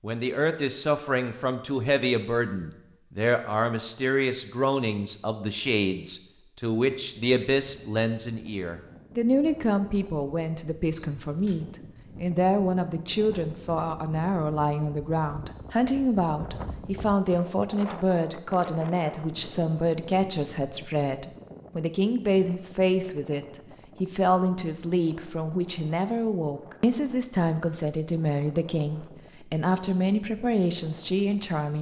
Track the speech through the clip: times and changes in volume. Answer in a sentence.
You can hear the speech from 0.0 to 31.7 s, at a steady volume.